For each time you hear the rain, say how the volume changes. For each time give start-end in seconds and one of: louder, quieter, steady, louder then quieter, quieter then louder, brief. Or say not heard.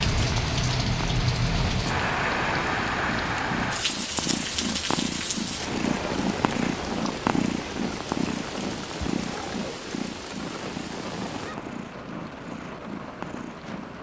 0.0-13.9 quieter.